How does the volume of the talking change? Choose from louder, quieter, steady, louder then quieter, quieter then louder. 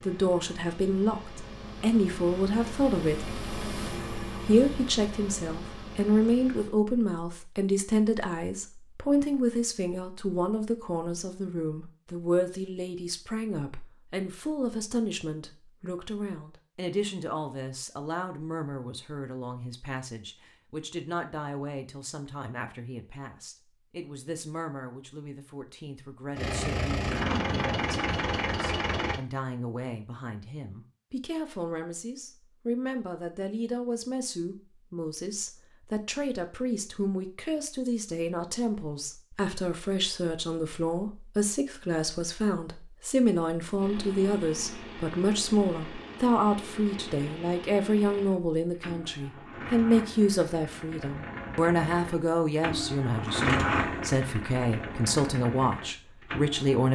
quieter then louder.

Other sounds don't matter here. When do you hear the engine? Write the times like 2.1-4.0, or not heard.
0.0-6.8, 26.4-29.2, 43.8-56.8.